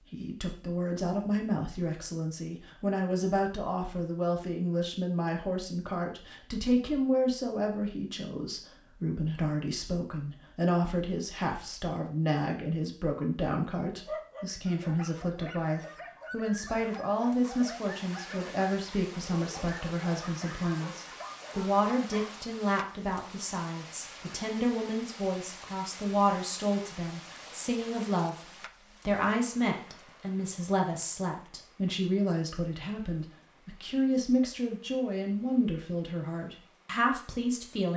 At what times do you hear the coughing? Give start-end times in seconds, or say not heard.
not heard.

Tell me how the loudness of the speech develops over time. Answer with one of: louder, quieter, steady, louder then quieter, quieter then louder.
steady.